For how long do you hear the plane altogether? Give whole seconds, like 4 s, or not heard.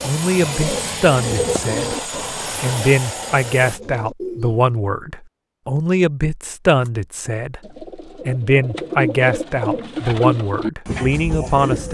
4 s.